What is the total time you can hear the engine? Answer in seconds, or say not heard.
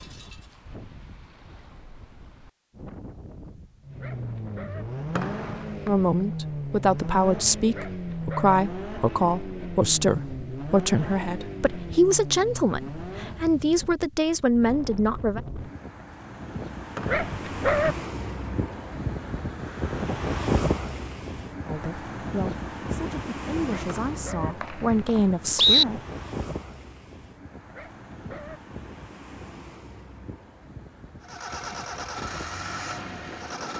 12 s.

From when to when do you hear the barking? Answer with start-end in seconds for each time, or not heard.
4.0-4.8, 7.7-8.6, 17.1-17.9, 23.6-24.6, 27.7-28.6.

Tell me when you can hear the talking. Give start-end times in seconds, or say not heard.
5.8-15.4, 21.6-26.0.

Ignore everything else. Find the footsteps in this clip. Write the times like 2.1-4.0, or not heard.
not heard.